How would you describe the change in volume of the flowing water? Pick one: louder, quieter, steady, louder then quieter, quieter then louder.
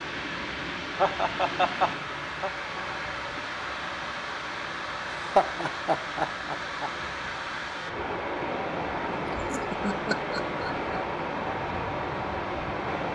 steady.